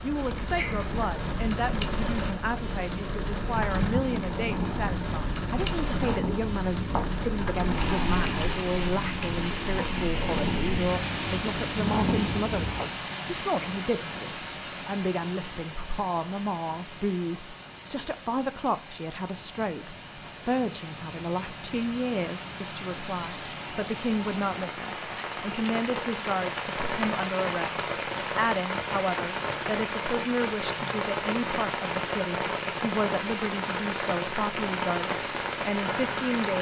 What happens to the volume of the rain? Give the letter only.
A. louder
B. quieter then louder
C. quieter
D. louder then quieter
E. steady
B.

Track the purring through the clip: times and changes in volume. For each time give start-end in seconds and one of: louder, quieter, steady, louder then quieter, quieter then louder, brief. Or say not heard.
0.0-12.8 louder.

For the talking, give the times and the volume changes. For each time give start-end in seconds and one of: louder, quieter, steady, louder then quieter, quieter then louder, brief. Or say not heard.
0.0-36.5 steady.